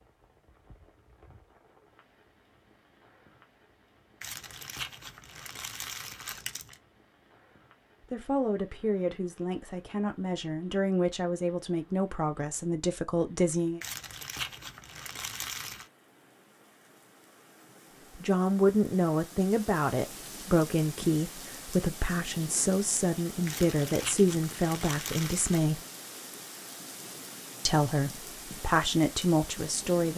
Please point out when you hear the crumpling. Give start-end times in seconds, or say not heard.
4.2-6.8, 13.8-15.9, 23.4-25.6.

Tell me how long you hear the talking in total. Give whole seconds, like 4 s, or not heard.
16 s.